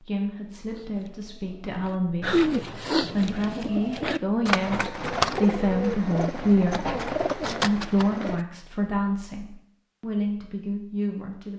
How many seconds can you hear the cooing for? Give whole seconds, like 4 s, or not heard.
8 s.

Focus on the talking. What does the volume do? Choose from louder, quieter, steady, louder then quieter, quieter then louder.
louder then quieter.